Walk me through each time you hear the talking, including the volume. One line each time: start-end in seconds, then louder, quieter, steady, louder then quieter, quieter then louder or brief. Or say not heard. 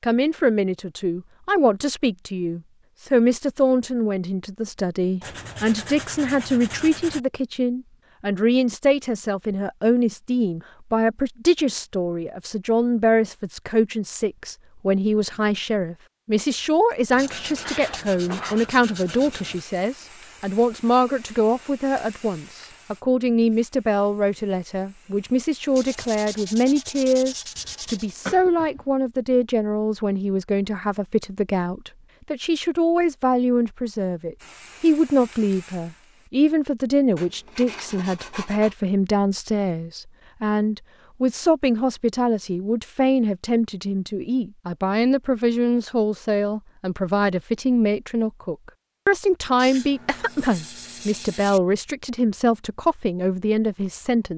0.0-54.3 steady.